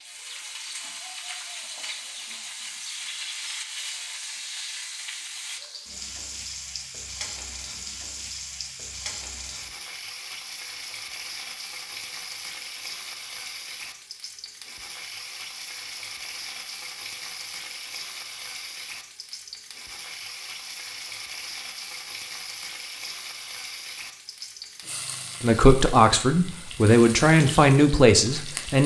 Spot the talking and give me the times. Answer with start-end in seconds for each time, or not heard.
25.4-28.8.